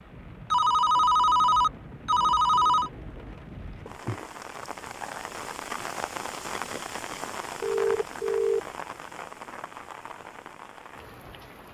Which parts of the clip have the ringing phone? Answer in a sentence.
You can hear the ringing phone from 0.5 to 2.9 s and from 7.6 to 8.6 s.